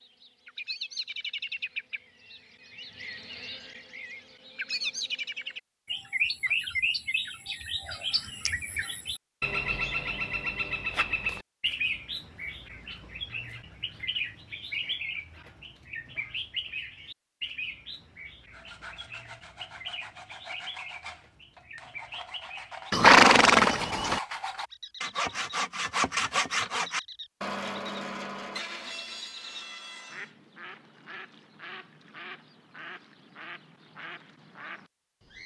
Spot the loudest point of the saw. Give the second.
26 s.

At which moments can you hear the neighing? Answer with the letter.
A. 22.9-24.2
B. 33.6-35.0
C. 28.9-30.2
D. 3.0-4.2
A.